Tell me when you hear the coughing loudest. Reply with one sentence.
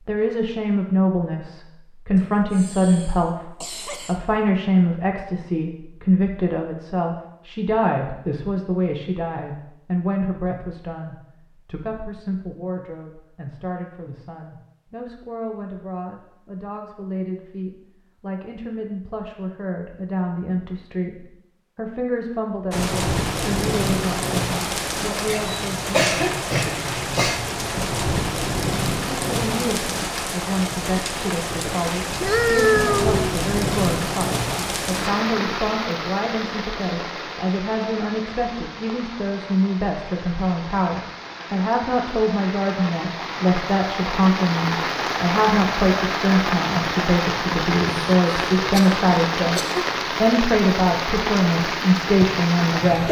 The loudest moment of the coughing is at 26 seconds.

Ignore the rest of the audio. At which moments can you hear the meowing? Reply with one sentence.
The meowing can be heard from 32.2 to 33.2 s.